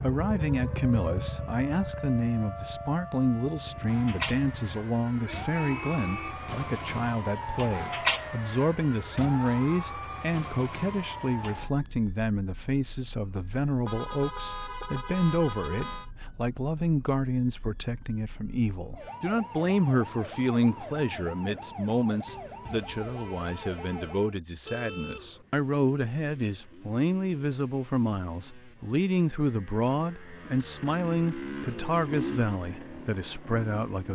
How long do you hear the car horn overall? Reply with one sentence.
You can hear the car horn for 4 seconds altogether.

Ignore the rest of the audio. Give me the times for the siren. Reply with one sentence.
You can hear the siren from 0.0 to 24.4 s.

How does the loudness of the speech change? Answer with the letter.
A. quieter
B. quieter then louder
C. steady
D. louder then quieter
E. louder
C.